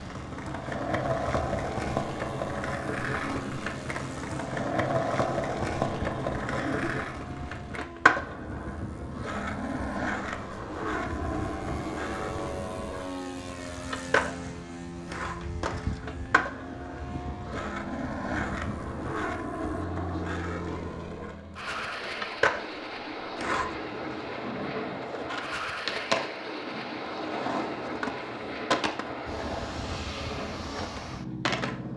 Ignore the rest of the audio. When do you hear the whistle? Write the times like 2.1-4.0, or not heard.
not heard.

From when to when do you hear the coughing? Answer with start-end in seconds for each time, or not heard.
6.5-7.2.